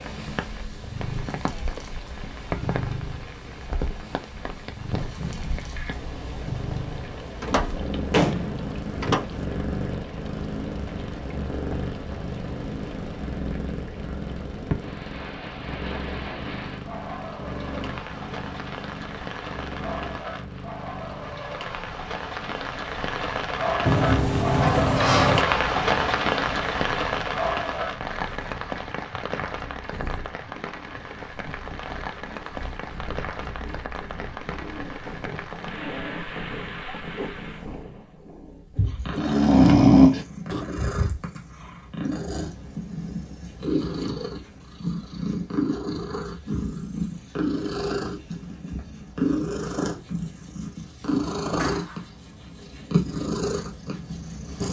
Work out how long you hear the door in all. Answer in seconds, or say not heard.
4 s.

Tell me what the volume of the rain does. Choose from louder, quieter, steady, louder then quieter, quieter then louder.
louder then quieter.